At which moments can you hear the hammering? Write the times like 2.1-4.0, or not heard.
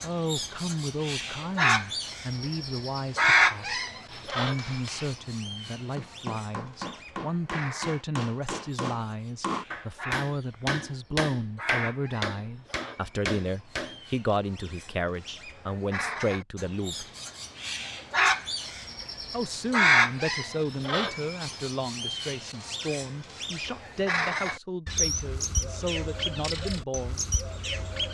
4.1-14.0.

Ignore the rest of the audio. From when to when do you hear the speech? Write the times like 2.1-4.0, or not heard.
0.0-17.1, 19.3-27.2.